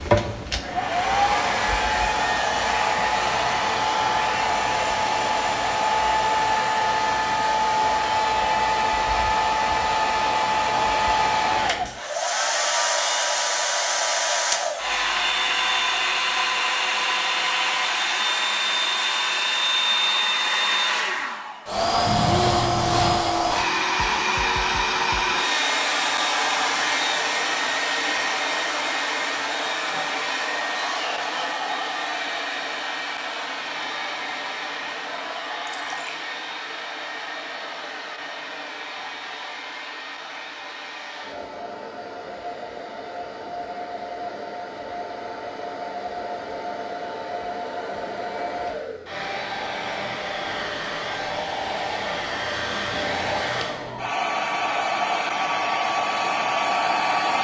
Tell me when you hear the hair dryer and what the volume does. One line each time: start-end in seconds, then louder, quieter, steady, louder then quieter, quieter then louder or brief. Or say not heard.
0.0-57.3 quieter then louder.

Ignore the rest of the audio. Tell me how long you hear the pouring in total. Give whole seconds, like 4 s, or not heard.
2 s.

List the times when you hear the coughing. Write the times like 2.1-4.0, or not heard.
29.9-31.6.